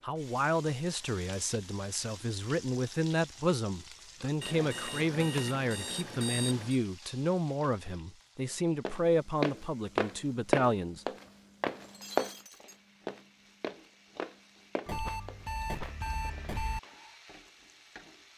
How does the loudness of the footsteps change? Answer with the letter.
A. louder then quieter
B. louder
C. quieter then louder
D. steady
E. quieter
E.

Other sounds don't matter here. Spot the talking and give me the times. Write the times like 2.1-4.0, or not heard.
0.0-11.1.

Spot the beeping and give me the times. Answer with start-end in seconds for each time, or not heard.
4.4-6.8, 14.8-16.8.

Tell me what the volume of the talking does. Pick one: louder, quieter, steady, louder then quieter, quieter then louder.
steady.